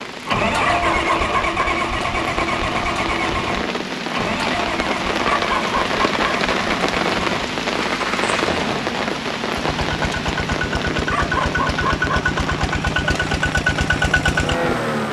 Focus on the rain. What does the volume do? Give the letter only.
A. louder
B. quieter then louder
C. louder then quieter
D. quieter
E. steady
C.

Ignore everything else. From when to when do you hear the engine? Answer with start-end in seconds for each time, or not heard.
0.1-15.0.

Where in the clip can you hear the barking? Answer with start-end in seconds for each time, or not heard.
0.6-1.8, 5.2-6.5, 11.1-12.3.